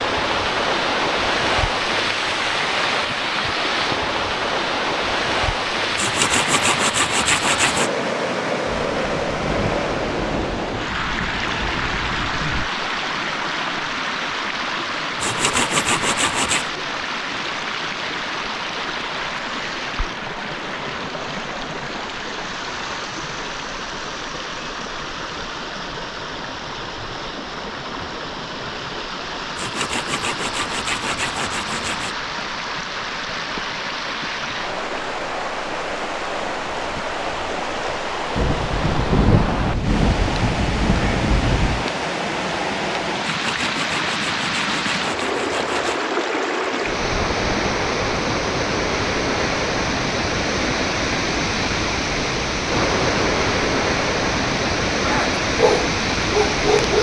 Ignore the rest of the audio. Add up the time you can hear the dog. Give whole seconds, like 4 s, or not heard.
2 s.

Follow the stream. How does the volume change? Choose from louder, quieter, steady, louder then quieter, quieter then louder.
quieter then louder.